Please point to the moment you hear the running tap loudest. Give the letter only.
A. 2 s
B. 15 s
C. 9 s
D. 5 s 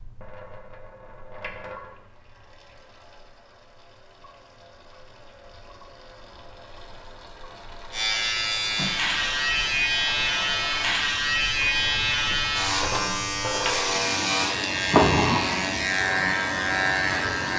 B.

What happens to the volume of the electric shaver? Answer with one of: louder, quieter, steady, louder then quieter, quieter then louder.
steady.